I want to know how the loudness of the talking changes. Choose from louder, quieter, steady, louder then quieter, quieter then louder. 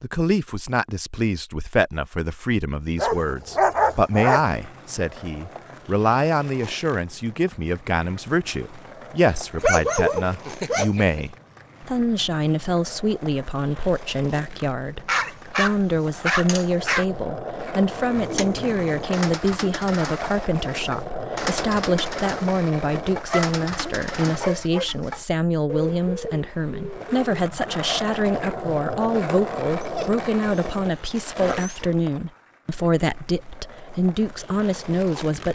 steady.